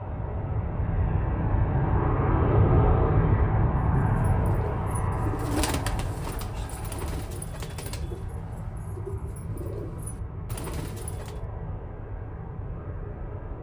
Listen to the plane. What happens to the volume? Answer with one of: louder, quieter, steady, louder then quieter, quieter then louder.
quieter.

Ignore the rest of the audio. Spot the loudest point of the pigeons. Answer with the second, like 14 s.
6 s.